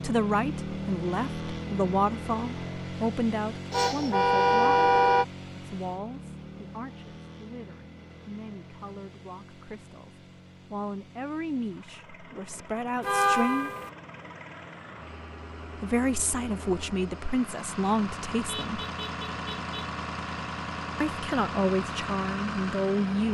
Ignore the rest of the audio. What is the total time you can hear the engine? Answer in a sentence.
You can hear the engine for 23 seconds altogether.